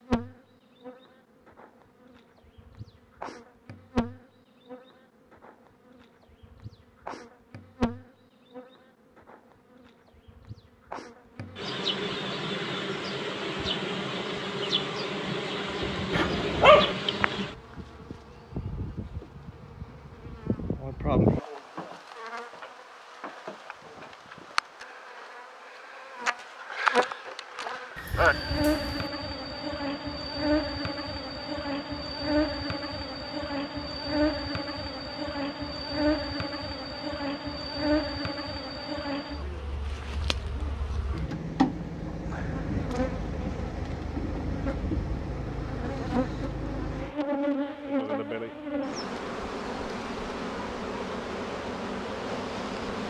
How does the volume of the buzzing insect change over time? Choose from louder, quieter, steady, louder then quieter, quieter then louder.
louder.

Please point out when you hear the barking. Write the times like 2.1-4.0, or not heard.
16.1-16.9.